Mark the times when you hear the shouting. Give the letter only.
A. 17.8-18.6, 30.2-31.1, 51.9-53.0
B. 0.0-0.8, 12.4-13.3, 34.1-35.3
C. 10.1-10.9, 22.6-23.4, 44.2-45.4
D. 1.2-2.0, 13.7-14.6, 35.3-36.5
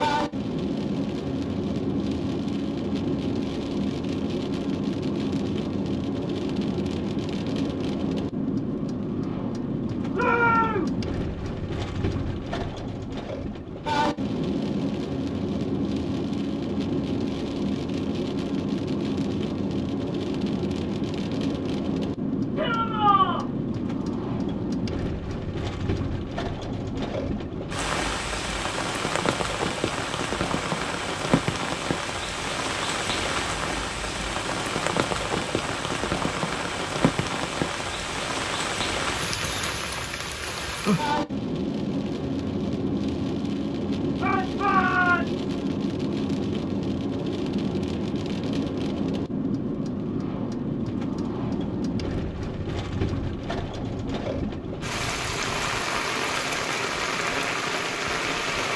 C.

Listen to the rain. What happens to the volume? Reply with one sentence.
The loudness of the rain stays about the same.